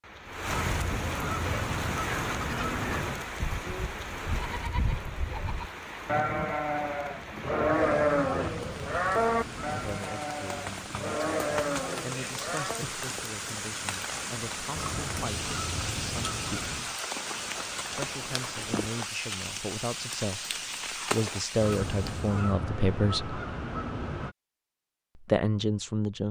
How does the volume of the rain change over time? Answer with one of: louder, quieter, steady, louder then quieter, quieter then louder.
quieter then louder.